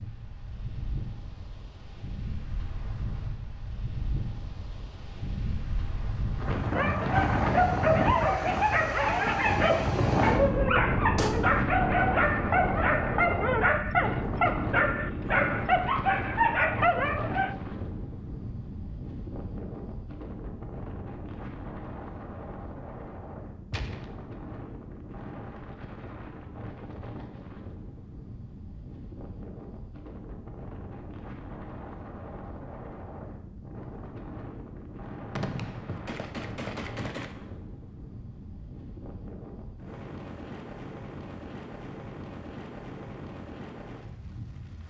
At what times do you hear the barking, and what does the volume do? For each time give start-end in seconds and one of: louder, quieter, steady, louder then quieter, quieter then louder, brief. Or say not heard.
6.7-17.6 steady.